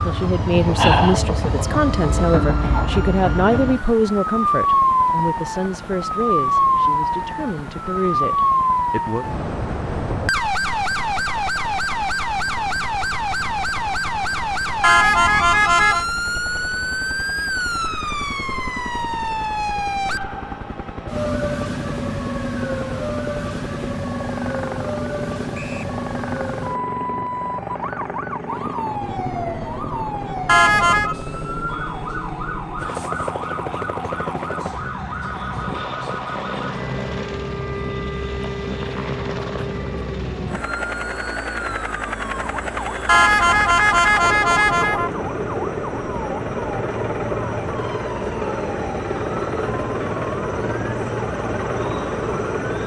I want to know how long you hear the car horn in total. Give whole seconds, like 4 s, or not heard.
4 s.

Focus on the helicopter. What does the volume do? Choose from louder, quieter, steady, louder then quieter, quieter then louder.
louder.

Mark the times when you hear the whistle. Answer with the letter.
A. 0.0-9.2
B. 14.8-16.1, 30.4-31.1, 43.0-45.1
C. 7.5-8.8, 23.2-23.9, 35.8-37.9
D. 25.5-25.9
D.